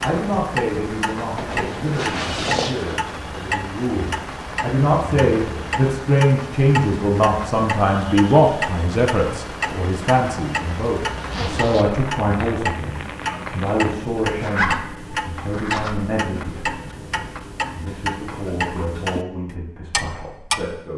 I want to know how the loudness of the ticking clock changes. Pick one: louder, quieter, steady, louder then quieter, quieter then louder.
steady.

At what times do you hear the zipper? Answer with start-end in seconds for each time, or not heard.
1.4-3.0, 11.3-11.9, 14.3-16.2.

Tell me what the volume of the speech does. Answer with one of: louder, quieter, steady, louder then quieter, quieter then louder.
louder then quieter.